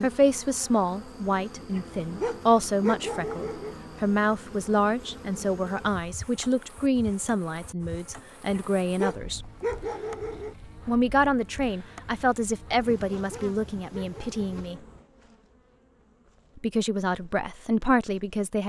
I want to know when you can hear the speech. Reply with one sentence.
You can hear the speech from 0.0 to 9.4 s, from 10.8 to 14.8 s and from 16.6 to 18.6 s.